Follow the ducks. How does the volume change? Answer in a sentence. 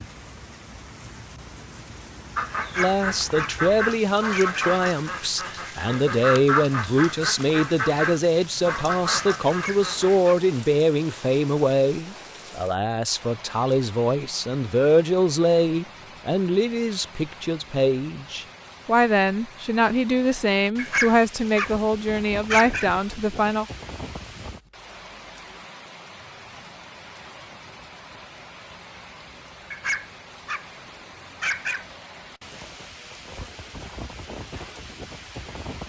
The loudness of the ducks stays about the same.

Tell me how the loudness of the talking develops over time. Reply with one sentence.
The loudness of the talking stays about the same.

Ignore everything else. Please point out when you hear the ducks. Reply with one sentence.
The ducks can be heard from 2.4 to 10.2 s.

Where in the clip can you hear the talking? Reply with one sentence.
You can hear the talking from 2.8 to 23.6 s.